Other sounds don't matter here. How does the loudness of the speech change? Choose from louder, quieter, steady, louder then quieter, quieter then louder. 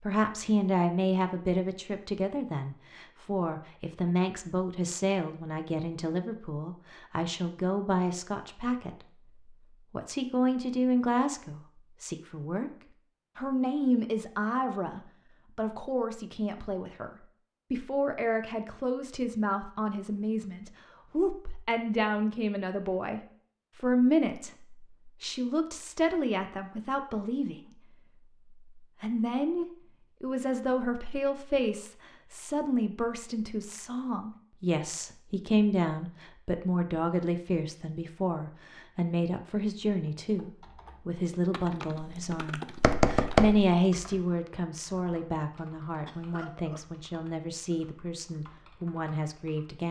steady.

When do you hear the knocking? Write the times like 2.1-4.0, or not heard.
42.0-43.8.